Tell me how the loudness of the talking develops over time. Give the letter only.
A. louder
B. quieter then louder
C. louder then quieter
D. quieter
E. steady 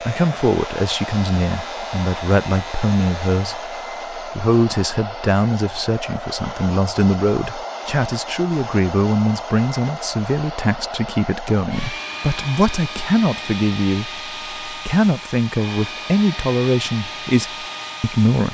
E.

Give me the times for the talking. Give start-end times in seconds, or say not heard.
0.1-18.4.